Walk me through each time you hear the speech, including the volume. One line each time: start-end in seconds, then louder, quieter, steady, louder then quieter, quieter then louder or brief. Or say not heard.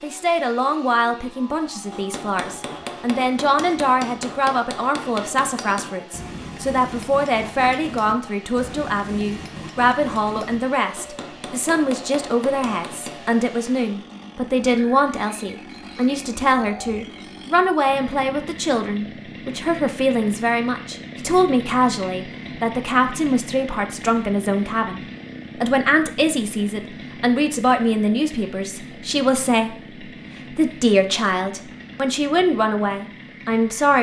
0.0-33.9 steady.